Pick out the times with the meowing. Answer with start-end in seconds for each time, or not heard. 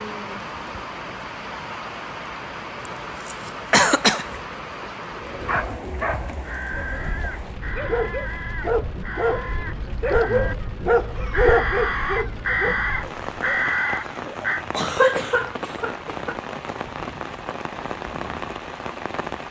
not heard.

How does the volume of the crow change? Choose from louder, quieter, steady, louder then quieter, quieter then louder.
louder.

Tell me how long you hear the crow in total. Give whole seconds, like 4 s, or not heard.
8 s.